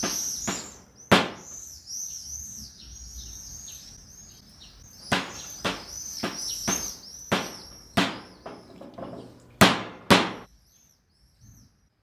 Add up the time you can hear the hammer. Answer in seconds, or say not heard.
7 s.